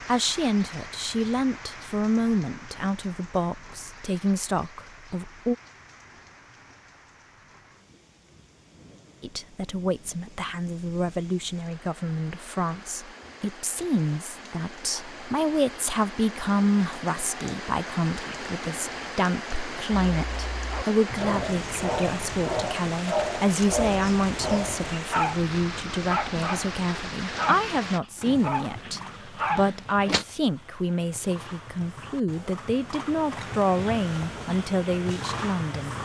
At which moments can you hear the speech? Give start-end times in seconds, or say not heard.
0.1-5.5, 9.2-36.0.